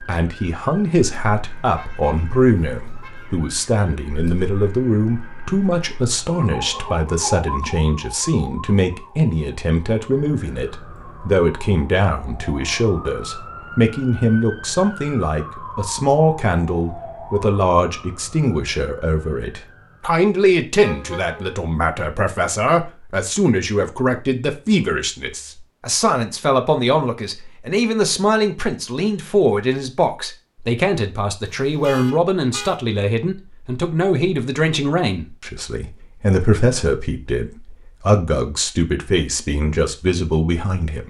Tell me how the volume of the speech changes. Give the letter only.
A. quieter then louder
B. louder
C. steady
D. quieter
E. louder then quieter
C.